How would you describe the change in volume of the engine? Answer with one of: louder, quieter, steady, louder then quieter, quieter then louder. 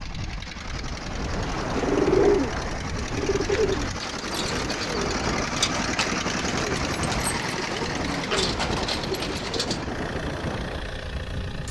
louder then quieter.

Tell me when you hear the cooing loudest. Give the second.
2 s.